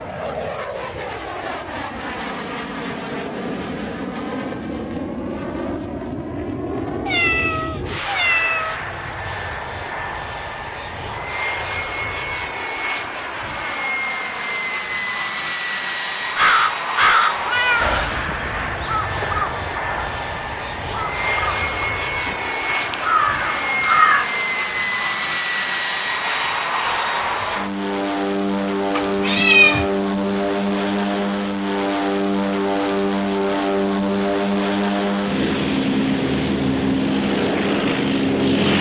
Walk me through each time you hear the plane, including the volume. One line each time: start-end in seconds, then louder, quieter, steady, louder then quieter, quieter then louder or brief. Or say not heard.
0.0-38.7 louder.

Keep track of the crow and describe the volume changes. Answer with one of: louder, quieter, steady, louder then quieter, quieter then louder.
quieter then louder.